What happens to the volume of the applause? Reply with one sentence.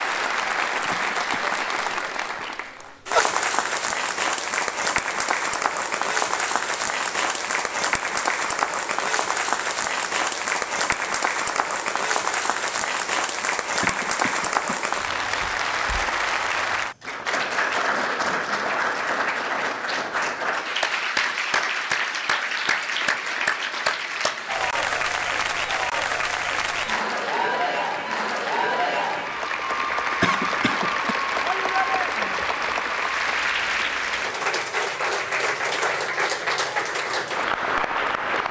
The volume of the applause stays about the same.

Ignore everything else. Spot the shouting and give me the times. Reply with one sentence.
The shouting can be heard from 31.4 to 32.5 s.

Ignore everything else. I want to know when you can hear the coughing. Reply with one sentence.
You can hear the coughing from 0.9 to 1.6 s, from 13.8 to 14.8 s and from 30.2 to 31.1 s.